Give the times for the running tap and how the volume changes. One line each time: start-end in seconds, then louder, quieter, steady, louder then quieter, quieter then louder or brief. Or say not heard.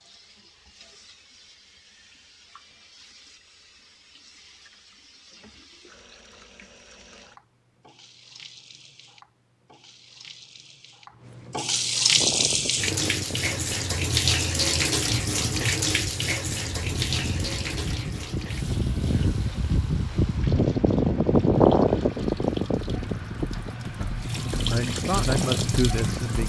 0.0-26.4 louder then quieter.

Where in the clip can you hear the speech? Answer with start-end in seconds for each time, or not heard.
23.9-26.4.